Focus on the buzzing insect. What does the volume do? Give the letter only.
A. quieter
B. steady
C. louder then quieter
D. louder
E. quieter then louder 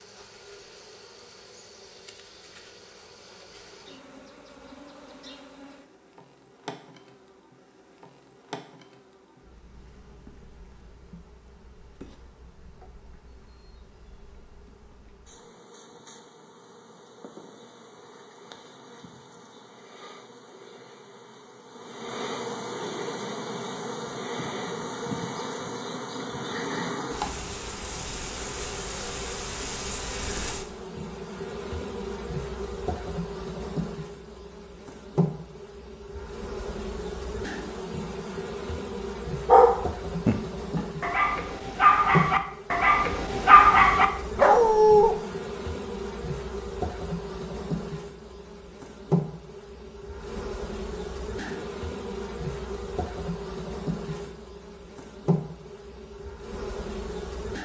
D.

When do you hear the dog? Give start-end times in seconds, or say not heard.
39.5-45.1.